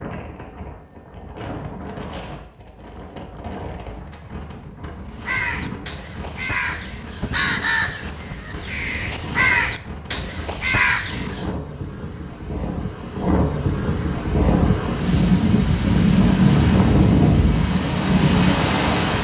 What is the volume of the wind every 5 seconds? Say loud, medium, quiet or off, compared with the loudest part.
quiet, quiet, medium, loud.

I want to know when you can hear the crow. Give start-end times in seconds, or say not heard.
5.1-11.6.